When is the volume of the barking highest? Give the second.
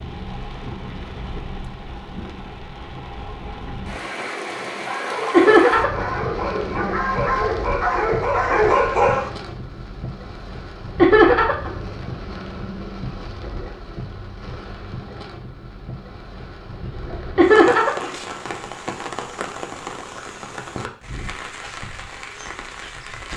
9 s.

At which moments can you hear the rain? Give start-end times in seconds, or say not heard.
0.0-23.3.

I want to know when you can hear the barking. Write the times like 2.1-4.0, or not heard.
4.3-9.3.